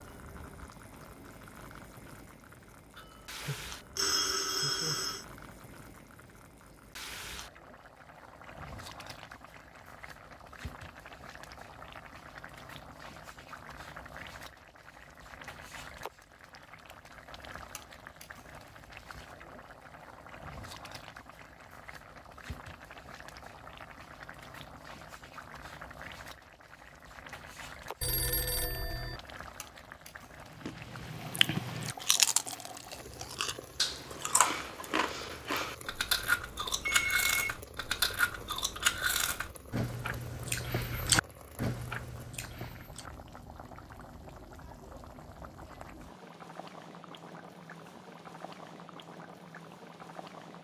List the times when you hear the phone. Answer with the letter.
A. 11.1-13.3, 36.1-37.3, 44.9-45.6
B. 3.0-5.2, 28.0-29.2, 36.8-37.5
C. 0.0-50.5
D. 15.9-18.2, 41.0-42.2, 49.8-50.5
B.